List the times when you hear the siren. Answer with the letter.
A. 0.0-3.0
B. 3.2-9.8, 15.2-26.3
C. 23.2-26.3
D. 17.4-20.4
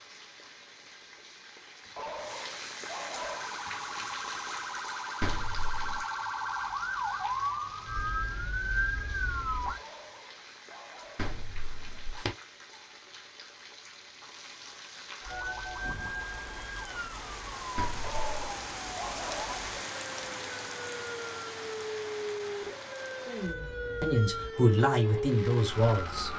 B.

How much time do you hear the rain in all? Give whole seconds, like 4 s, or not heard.
26 s.